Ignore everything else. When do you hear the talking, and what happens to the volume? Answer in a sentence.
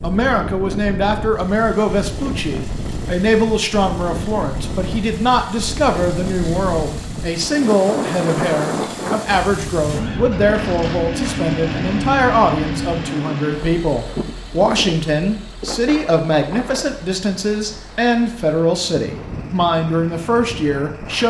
The talking can be heard from 0.0 to 21.2 s, at a steady volume.